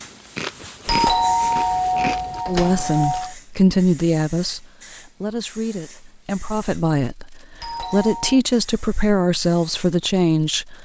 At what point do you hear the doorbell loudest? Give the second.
1 s.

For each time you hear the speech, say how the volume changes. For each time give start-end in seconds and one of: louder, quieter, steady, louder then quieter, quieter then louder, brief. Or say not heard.
2.5-10.8 quieter then louder.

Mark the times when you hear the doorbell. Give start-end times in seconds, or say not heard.
0.8-3.4, 7.6-8.4.